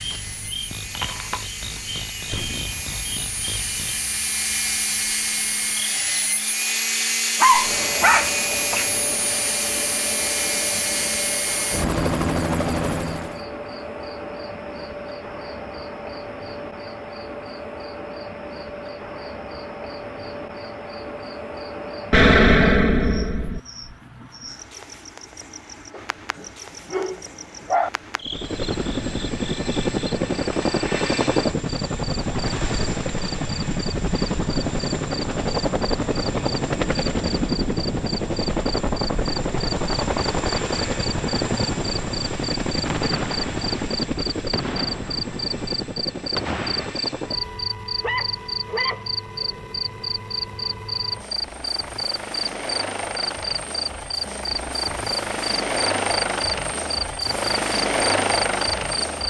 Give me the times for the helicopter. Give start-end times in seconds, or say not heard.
0.0-13.4, 28.2-59.2.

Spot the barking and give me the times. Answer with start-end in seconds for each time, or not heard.
7.4-8.8, 25.9-27.9, 48.0-49.9.